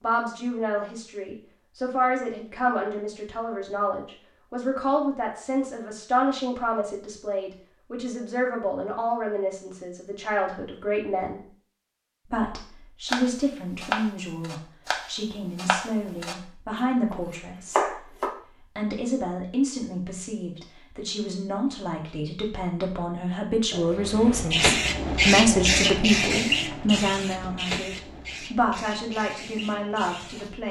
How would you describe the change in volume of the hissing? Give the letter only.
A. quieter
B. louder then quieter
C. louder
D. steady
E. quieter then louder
A.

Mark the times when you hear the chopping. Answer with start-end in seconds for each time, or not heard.
13.1-16.4, 17.1-18.4.